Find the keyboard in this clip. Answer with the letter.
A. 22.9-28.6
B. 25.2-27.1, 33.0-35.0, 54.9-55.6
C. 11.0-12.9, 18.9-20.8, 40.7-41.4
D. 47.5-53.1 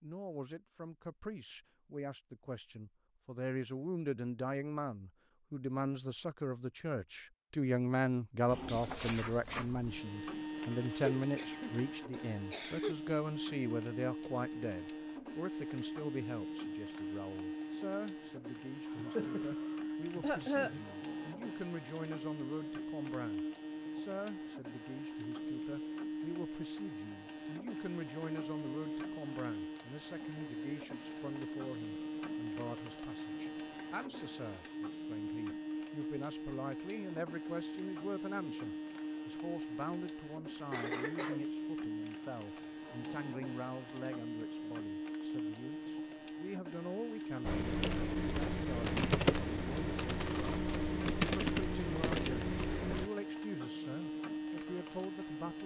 D.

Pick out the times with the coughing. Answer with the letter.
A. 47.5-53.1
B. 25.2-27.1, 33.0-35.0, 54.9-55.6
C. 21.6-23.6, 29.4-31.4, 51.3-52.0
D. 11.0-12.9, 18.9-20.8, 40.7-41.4
D.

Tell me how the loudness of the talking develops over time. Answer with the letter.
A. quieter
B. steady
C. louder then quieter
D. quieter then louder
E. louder
A.